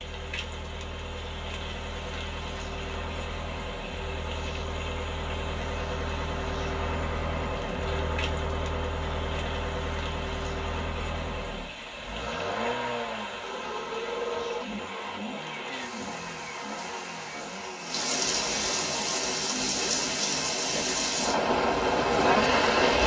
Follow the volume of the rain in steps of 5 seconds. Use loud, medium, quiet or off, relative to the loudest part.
quiet, quiet, quiet, medium, loud.